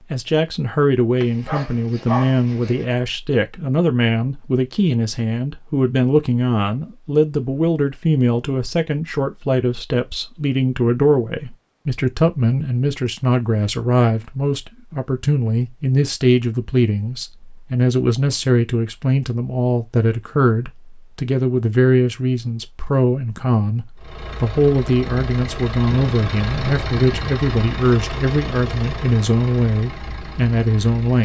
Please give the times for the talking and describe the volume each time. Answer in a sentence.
The talking can be heard from 0.1 to 31.2 s, at a steady volume.